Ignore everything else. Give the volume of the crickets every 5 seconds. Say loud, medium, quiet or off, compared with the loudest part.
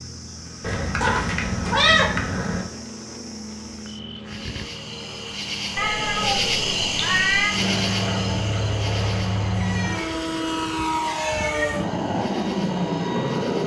quiet, loud, quiet.